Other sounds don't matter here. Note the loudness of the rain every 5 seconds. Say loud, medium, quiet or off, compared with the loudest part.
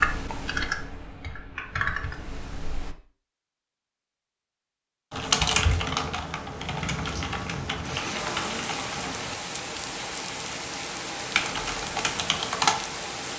off, loud, loud.